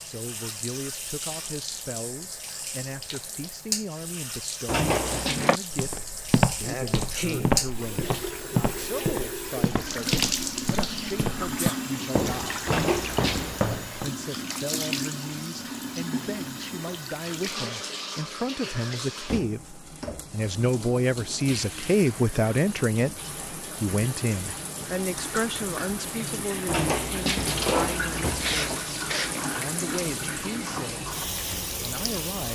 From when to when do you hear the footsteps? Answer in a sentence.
You can hear the footsteps from 5.0 to 14.1 s.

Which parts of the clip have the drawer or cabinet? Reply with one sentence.
You can hear the drawer or cabinet from 4.7 to 5.5 s, from 12.7 to 13.7 s and from 26.6 to 28.8 s.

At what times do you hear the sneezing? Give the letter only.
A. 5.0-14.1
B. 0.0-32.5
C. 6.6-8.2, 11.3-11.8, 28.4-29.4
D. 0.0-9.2
C.